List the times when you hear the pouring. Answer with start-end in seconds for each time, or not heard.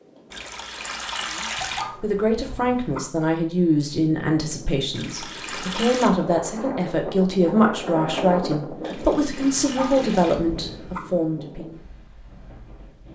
0.3-1.9, 4.9-6.1, 8.8-10.3.